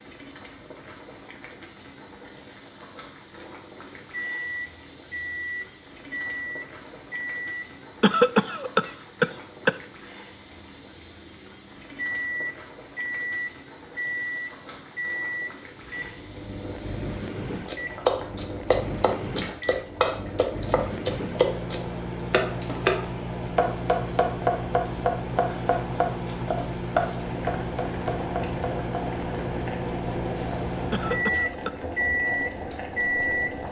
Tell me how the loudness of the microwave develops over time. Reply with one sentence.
The volume of the microwave goes up.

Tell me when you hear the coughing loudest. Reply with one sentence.
The loudest moment of the coughing is at 8 seconds.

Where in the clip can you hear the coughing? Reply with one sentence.
You can hear the coughing from 8.0 to 9.8 s and from 30.9 to 31.8 s.